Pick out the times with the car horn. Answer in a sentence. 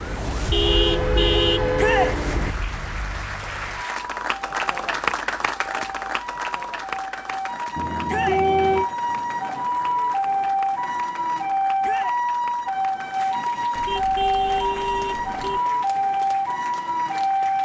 The car horn can be heard from 0.5 to 2.5 s, from 7.8 to 8.9 s and from 13.8 to 15.6 s.